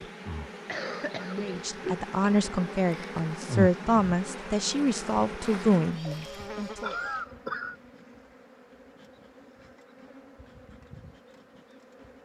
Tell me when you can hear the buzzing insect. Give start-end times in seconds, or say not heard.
0.0-12.1.